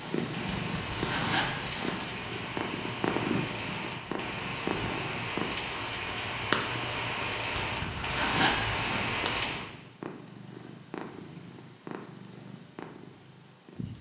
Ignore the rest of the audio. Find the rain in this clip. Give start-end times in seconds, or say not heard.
0.2-9.7.